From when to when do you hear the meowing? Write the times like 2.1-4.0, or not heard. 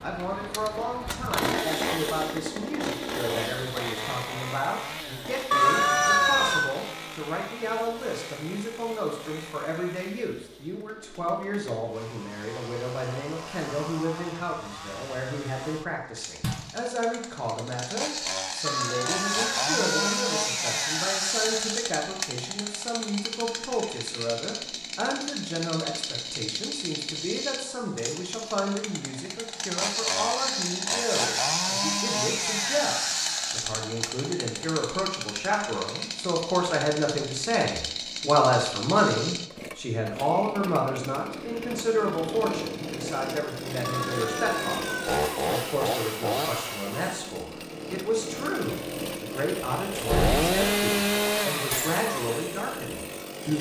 5.5-6.7, 18.6-20.2, 43.8-45.2.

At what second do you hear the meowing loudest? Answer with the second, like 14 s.
6 s.